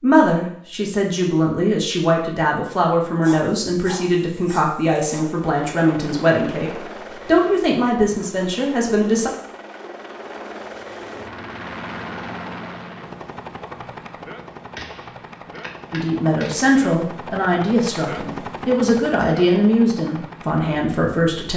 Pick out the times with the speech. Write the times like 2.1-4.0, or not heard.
0.0-9.3, 15.9-21.5.